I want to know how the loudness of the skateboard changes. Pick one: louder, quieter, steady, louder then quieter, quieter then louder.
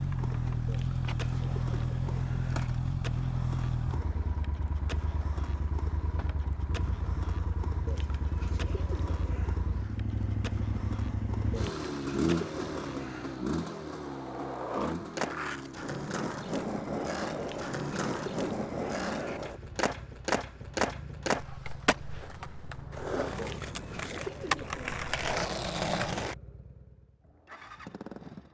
louder.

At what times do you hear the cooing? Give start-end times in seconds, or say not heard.
0.7-2.7, 7.8-9.6, 11.5-13.4, 17.4-19.4, 23.4-25.4.